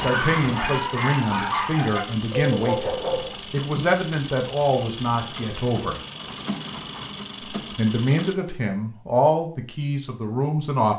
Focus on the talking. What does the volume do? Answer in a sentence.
The loudness of the talking stays about the same.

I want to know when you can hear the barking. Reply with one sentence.
You can hear the barking from 0.0 to 3.3 s.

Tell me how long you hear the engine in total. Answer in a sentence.
The engine can be heard for 8 seconds in total.